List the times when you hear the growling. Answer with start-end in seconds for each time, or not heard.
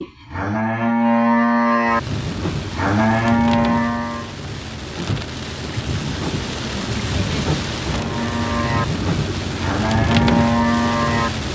not heard.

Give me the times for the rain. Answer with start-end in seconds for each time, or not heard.
1.9-11.4.